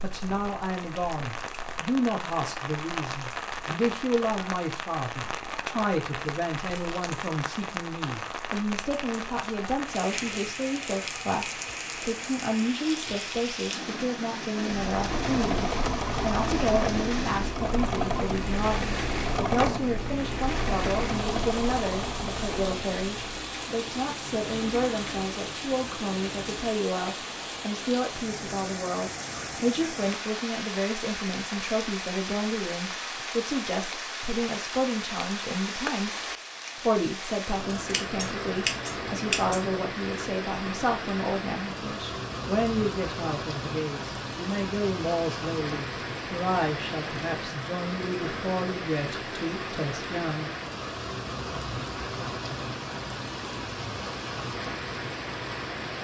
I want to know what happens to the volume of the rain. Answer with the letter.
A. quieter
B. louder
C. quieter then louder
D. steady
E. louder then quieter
D.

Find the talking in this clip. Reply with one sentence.
The talking can be heard from 0.0 to 50.5 s.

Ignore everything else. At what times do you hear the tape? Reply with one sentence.
The tape can't be heard in this clip.